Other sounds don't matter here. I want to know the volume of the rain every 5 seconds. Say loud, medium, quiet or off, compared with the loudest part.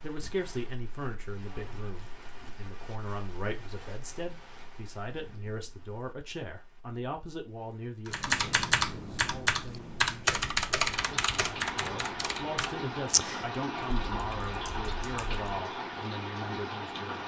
quiet, quiet, loud, loud.